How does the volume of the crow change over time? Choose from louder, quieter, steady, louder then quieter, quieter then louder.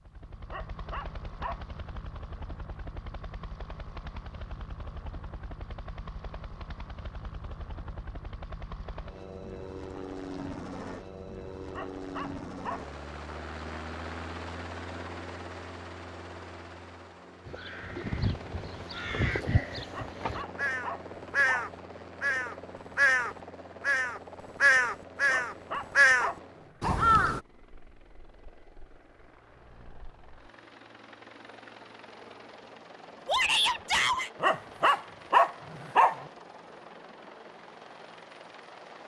louder.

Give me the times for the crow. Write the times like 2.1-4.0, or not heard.
17.4-27.4.